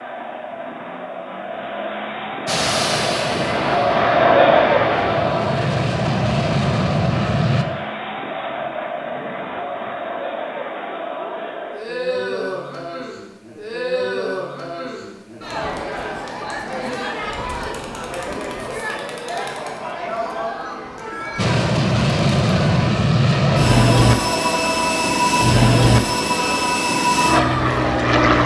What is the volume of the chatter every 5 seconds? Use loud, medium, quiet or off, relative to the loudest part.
loud, medium, medium, medium, medium, medium.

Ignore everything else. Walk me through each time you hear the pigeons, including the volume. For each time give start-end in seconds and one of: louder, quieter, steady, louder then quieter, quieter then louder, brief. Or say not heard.
not heard.